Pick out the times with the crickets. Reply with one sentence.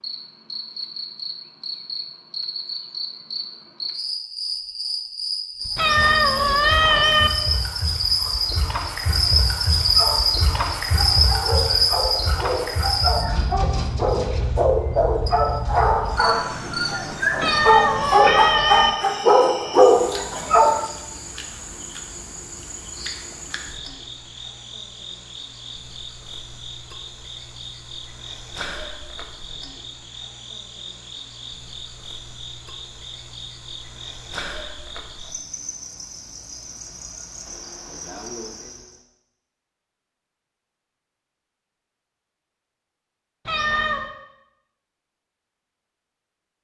The crickets can be heard from 0.0 to 39.0 s.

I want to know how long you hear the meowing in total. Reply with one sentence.
The meowing can be heard for 4 seconds in total.